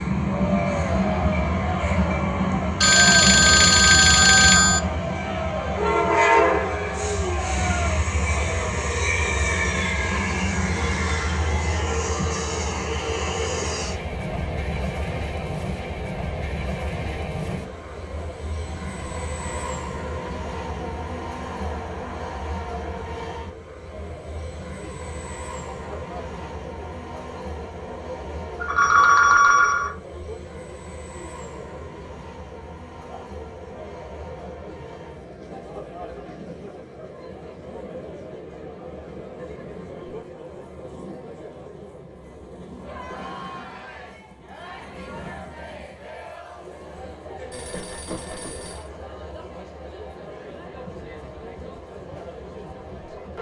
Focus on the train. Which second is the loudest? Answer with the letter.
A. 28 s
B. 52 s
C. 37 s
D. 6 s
D.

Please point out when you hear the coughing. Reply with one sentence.
The coughing can't be heard in this clip.